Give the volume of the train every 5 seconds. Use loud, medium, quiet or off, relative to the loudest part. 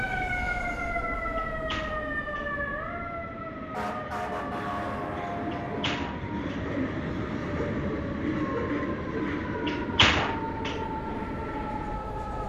medium, loud, medium.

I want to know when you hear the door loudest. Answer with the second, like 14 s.
10 s.